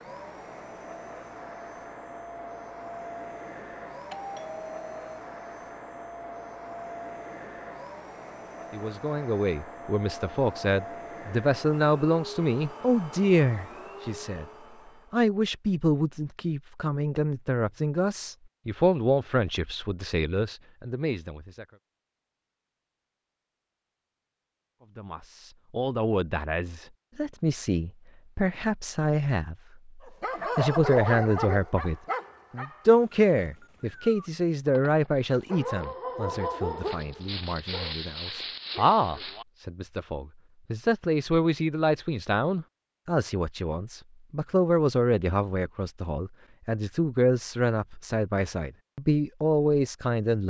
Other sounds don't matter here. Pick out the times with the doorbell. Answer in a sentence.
You can hear the doorbell from 4.1 to 5.2 s.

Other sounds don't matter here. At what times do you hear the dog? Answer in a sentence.
You can hear the dog from 30.0 to 39.5 s.